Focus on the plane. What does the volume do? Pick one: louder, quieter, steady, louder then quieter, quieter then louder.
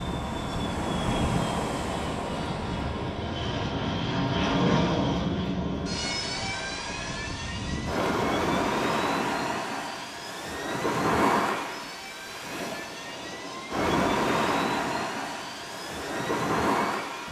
louder then quieter.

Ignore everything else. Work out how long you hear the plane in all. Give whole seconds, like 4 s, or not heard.
17 s.